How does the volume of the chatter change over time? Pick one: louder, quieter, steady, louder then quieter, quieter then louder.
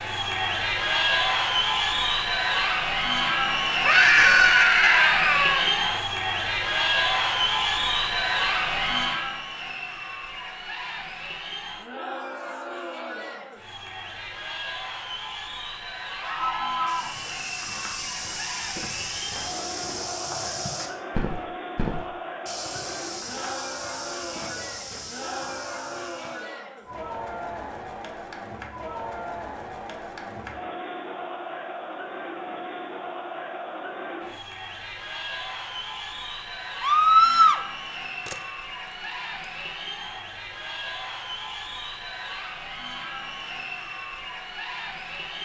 quieter.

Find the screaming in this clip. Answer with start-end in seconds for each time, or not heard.
3.9-5.7, 16.2-17.1, 36.8-37.6.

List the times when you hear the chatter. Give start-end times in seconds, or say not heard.
0.0-45.4.